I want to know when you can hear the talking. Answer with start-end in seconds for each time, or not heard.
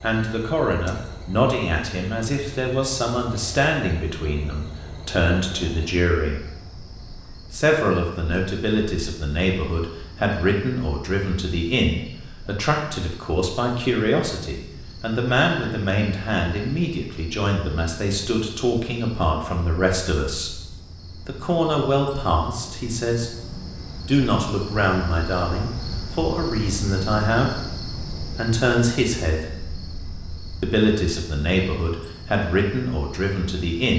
0.0-6.4, 7.5-20.6, 21.2-23.4, 24.1-27.6, 28.4-29.5, 30.6-33.9.